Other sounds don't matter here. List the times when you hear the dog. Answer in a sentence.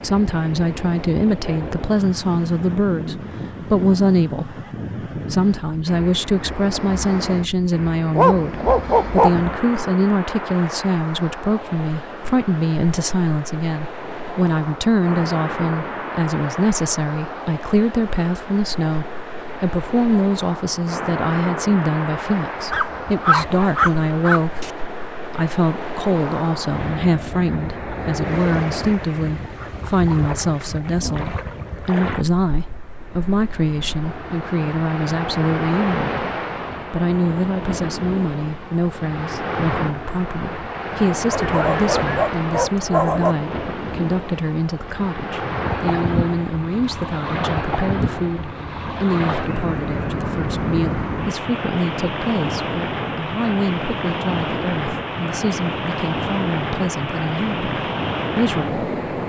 You can hear the dog from 8.2 to 9.6 s, from 22.7 to 24.7 s and from 41.3 to 43.4 s.